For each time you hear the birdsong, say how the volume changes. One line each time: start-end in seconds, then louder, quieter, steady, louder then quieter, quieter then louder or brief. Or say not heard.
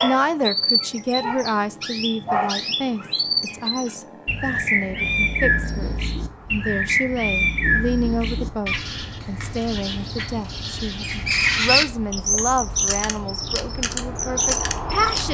0.0-15.2 steady.